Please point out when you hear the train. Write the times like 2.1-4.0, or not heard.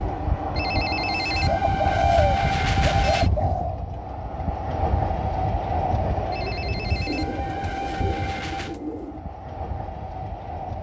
0.0-10.7.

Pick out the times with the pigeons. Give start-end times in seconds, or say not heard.
1.4-3.8, 7.0-9.2.